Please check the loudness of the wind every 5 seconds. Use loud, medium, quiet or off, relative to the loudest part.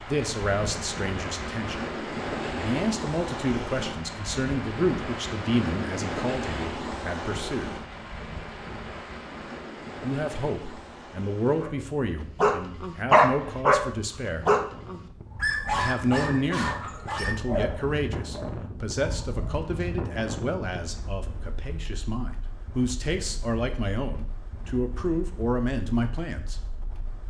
loud, loud, medium, medium, medium, quiet.